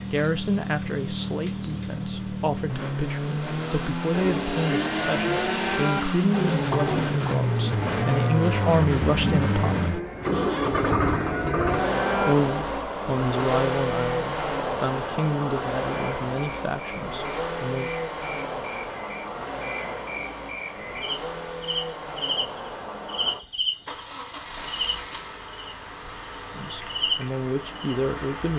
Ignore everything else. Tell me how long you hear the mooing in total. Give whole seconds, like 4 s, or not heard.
8 s.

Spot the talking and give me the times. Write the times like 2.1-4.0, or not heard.
0.0-9.9, 12.2-17.9, 26.6-28.5.